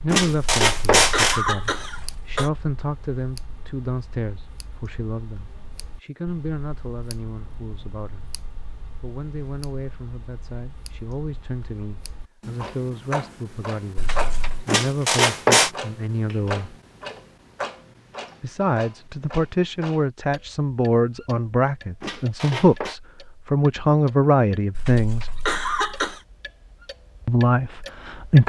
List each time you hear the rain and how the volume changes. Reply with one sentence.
The rain can't be heard in this clip.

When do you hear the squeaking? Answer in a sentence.
You can hear the squeaking from 0.1 to 1.4 s, from 14.7 to 15.7 s and from 22.0 to 22.9 s.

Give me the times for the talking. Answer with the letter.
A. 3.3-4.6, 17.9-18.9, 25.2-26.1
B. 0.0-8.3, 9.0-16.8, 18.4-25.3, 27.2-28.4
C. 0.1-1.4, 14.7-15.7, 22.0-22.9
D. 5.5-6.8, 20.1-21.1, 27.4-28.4
B.